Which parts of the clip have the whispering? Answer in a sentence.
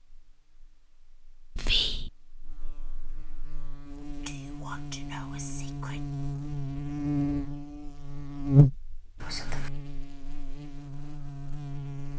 The whispering can be heard from 1.6 to 2.1 s, from 4.2 to 6.0 s and from 9.2 to 9.7 s.